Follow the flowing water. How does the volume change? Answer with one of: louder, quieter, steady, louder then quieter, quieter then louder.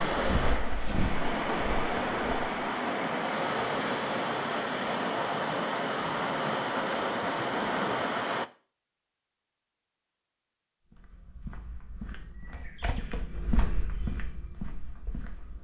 steady.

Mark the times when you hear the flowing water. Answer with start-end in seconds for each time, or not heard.
0.0-8.5.